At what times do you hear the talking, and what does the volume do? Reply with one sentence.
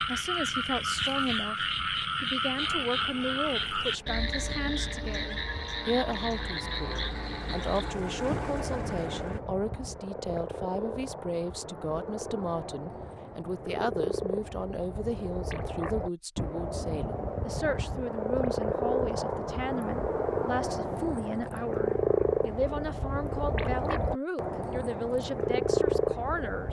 The talking can be heard from 0.1 to 26.6 s, at a steady volume.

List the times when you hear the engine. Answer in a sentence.
The engine can be heard from 2.5 to 9.4 s.